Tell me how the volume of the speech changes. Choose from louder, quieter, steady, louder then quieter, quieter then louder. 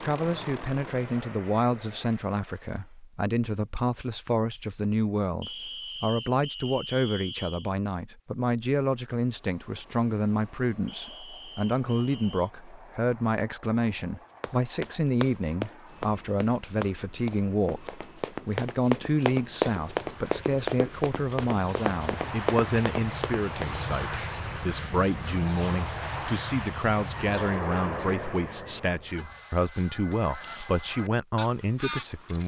steady.